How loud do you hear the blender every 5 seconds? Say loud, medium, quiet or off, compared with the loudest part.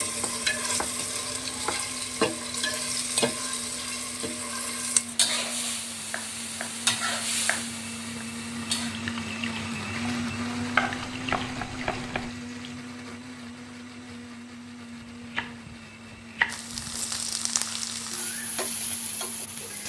medium, loud, loud, medium.